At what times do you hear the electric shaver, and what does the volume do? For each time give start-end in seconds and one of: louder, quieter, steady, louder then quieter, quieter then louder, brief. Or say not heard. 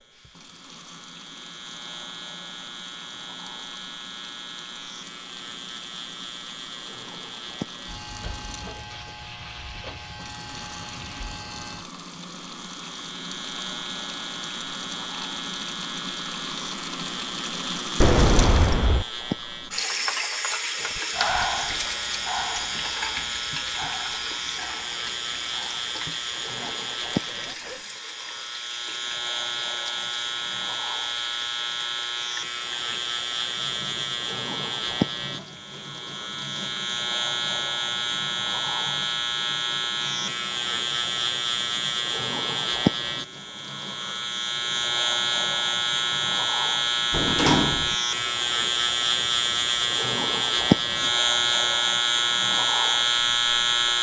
0.0-53.9 louder.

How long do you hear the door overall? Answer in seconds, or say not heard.
2 s.